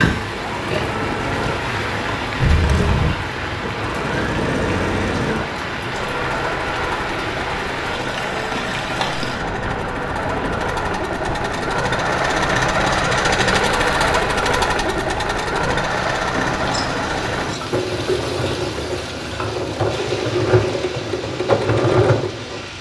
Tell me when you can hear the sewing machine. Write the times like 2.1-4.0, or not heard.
0.0-22.7.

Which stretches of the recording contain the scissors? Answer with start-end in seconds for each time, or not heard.
2.4-3.1, 16.3-17.6.